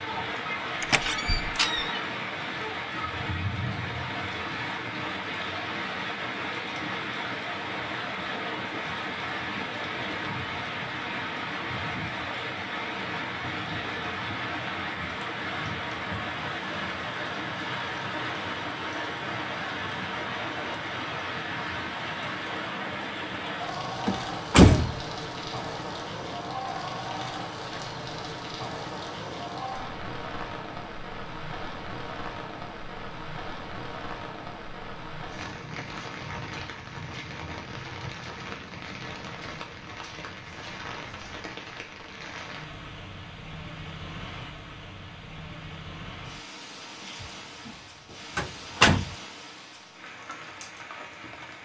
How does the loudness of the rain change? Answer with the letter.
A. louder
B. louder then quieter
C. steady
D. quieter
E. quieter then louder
D.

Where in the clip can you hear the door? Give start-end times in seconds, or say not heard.
0.8-2.0, 24.1-25.0, 47.2-47.7, 48.4-49.1.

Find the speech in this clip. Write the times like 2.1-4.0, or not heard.
not heard.